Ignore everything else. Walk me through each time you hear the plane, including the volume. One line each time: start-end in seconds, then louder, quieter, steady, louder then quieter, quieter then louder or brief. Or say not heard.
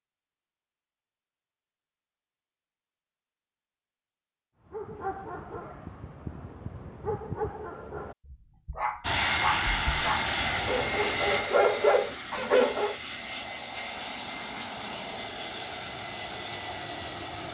9.0-17.4 quieter.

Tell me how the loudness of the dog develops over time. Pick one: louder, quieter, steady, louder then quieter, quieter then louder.
louder.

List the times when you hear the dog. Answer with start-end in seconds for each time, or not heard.
4.7-12.9.